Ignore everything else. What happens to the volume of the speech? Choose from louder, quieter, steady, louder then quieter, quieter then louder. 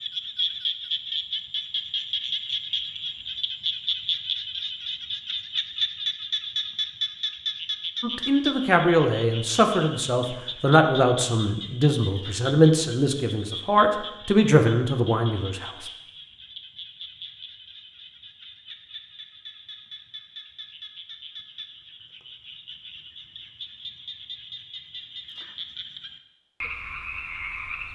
steady.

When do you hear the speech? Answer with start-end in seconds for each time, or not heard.
8.0-15.8.